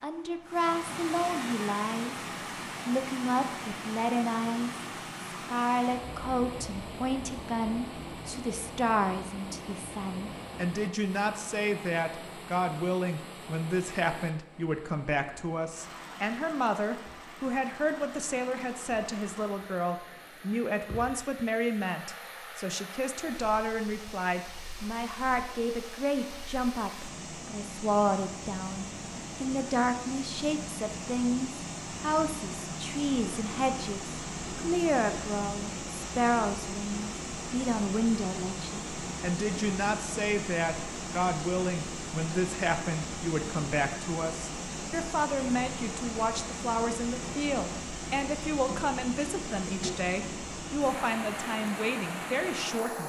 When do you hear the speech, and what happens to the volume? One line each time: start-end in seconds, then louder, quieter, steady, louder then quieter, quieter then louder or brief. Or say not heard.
0.0-2.1 brief
2.9-53.0 steady.